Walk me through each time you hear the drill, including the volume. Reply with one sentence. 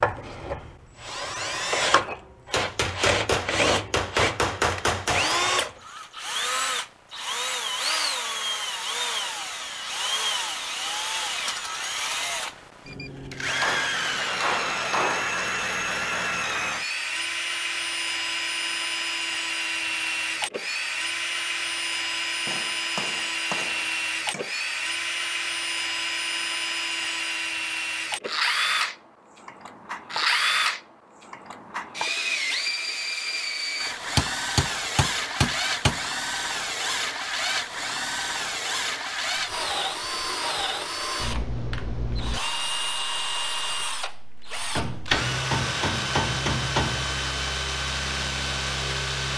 The drill can be heard from 0.0 to 49.3 s, at a steady volume.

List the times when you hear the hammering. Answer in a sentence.
The hammering can be heard from 2.5 to 5.4 s, from 13.5 to 15.4 s, from 22.4 to 24.5 s, from 34.1 to 36.0 s and from 44.8 to 47.1 s.